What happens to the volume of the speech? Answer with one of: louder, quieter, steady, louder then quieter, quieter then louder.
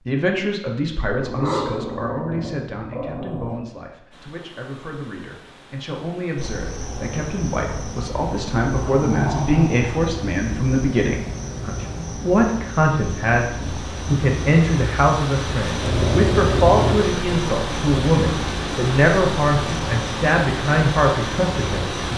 louder.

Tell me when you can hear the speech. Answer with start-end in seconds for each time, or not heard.
0.1-22.1.